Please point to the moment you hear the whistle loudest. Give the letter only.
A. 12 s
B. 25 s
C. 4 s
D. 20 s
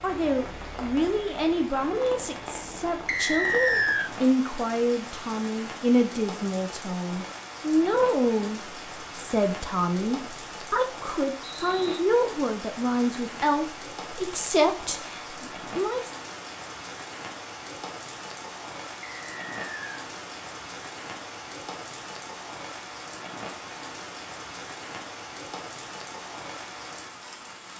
C.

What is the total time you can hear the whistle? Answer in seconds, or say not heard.
3 s.